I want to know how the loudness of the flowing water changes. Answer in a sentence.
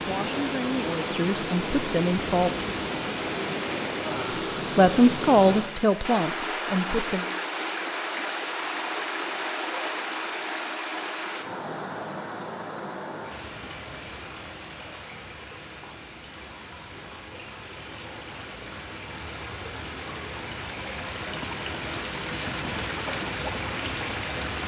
The volume of the flowing water goes down, then up.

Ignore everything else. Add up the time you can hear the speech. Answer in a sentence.
You can hear the speech for 5 seconds altogether.